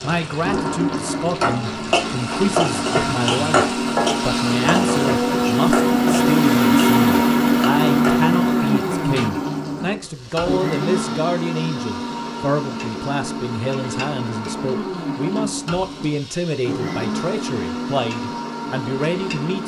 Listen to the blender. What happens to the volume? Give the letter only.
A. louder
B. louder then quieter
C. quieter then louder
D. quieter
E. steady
B.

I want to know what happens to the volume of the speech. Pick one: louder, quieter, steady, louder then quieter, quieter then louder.
steady.